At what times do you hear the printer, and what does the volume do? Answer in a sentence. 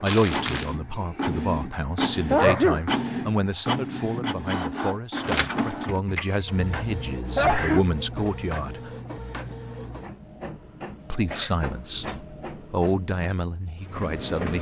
You can hear the printer from 0.1 to 14.5 s, getting quieter.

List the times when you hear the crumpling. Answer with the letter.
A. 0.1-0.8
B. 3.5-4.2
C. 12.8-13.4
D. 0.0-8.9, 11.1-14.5
A.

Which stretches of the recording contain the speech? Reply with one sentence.
You can hear the speech from 0.0 to 8.9 s and from 11.1 to 14.5 s.